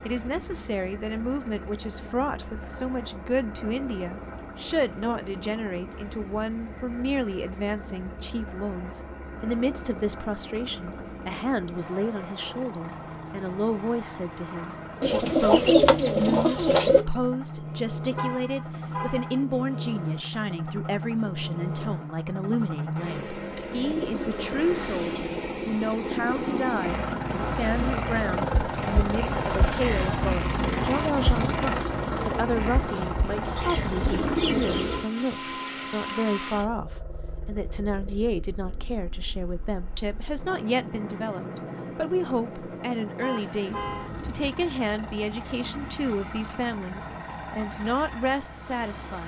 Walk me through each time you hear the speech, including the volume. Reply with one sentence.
You can hear the speech from 0.1 to 49.2 s, at a steady volume.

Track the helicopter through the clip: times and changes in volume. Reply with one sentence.
You can hear the helicopter from 0.0 to 49.2 s, getting louder then quieter.